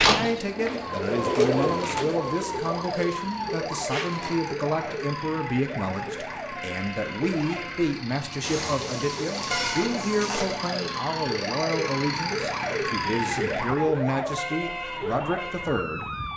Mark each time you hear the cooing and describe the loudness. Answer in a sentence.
You can hear the cooing from 0.0 to 4.4 s, getting louder then quieter.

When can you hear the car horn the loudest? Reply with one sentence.
The volume of the car horn peaks at 10 seconds.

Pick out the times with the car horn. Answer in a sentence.
The car horn can be heard from 8.4 to 10.4 s.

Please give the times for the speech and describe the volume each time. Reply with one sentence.
The speech can be heard from 0.0 to 16.1 s, at a steady volume.